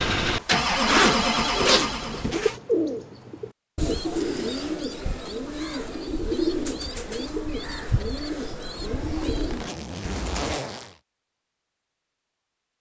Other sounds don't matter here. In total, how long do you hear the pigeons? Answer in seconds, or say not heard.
9 s.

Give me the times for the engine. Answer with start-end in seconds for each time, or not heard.
0.0-2.3.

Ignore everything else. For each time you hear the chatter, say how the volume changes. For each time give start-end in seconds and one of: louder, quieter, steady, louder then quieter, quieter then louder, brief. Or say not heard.
not heard.